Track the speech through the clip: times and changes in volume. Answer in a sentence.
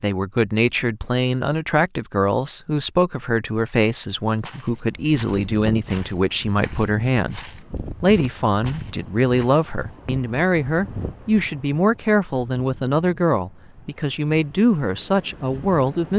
You can hear the speech from 0.0 to 7.4 s, at a steady volume; and from 8.0 to 16.1 s, at a steady volume.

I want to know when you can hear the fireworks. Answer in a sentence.
The fireworks can't be heard in this clip.